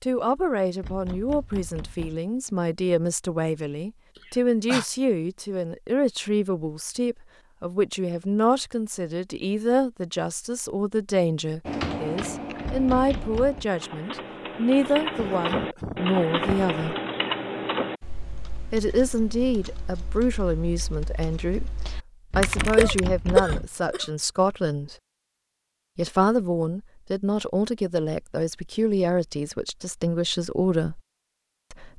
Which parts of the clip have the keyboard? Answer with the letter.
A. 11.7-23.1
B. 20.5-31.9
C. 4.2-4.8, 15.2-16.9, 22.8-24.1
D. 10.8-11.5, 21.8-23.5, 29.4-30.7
A.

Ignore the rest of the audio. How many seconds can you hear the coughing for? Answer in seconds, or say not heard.
4 s.